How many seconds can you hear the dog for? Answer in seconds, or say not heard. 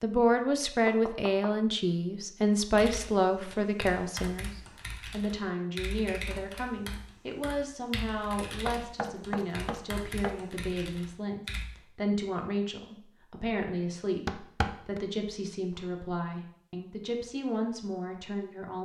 not heard.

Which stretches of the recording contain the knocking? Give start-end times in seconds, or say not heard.
0.8-1.5, 8.7-10.4, 14.2-15.0.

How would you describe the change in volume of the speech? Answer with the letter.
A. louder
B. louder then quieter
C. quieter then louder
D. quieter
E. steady
D.